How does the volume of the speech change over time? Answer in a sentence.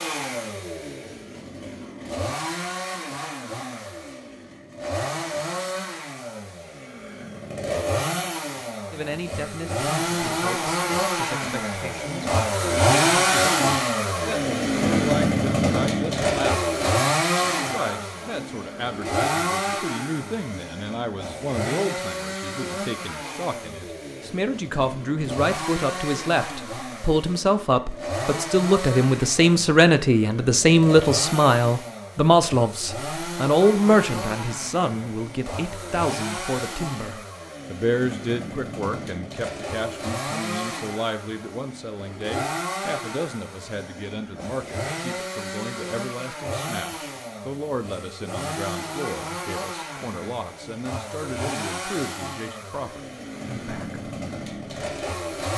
The loudness of the speech goes up, then down.